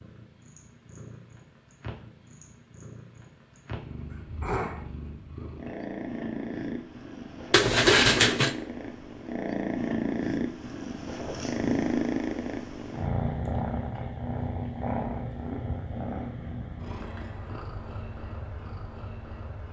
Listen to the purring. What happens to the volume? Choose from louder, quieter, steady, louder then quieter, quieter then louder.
louder then quieter.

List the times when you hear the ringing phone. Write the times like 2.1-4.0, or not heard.
7.5-8.6.